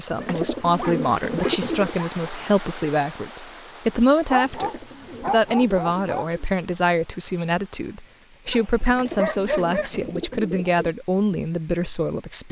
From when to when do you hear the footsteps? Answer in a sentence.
You can't hear the footsteps here.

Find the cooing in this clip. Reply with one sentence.
The cooing can be heard from 0.1 to 1.9 s, from 4.3 to 6.5 s and from 8.8 to 10.9 s.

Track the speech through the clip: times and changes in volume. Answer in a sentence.
You can hear the speech from 0.0 to 12.4 s, at a steady volume.